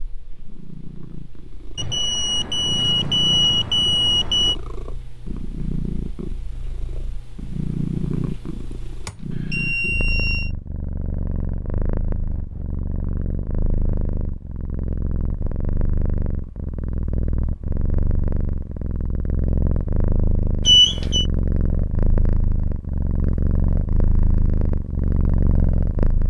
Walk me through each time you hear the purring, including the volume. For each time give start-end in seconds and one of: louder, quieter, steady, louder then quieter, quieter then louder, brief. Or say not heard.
0.0-26.2 louder.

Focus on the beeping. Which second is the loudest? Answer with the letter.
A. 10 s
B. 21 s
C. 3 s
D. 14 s
B.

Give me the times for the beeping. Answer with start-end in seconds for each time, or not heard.
1.8-4.5, 9.1-10.5, 20.6-21.2.